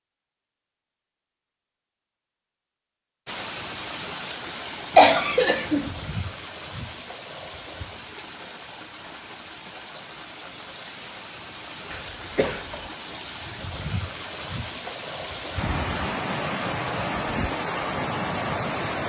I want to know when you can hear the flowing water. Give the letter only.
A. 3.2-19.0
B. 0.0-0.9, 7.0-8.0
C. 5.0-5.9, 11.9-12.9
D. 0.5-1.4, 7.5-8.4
A.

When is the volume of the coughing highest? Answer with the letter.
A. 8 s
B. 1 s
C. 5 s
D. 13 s
C.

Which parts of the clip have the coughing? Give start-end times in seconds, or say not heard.
5.0-5.9, 11.9-12.9.